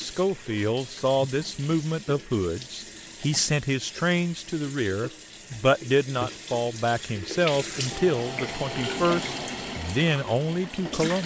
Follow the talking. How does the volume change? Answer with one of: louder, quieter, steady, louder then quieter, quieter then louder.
steady.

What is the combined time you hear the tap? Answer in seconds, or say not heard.
11 s.